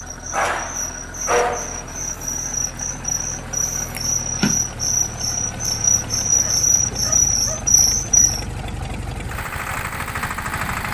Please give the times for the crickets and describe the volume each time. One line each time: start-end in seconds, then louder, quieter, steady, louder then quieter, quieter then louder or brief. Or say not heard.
0.1-8.4 louder.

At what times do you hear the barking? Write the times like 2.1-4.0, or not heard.
0.3-1.9, 6.4-7.7.